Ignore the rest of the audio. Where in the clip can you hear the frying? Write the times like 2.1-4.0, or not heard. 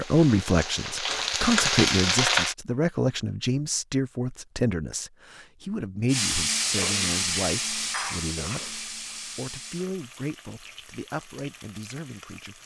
0.0-2.5, 6.0-12.6.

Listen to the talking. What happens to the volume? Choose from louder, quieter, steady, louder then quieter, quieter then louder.
quieter.